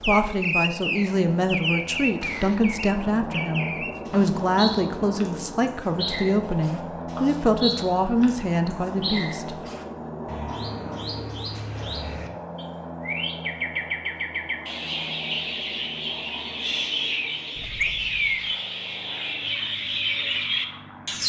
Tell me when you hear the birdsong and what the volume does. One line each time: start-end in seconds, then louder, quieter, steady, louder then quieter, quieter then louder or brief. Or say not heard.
0.0-21.2 quieter then louder.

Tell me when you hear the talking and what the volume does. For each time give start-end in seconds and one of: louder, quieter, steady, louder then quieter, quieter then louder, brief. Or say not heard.
0.0-9.6 steady.